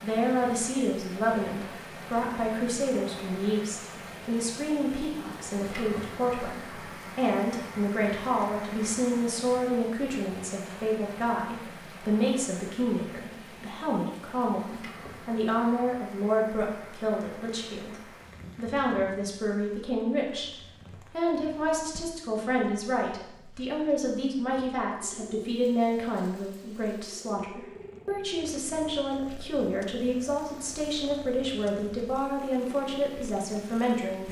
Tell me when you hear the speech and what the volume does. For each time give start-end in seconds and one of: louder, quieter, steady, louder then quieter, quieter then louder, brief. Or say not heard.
0.0-34.2 steady.